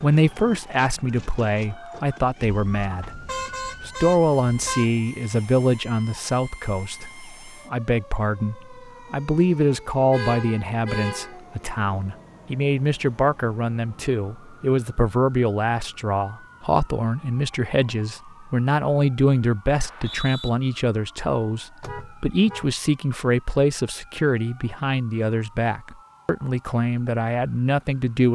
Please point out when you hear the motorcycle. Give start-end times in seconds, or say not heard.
not heard.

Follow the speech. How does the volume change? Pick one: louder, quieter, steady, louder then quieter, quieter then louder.
steady.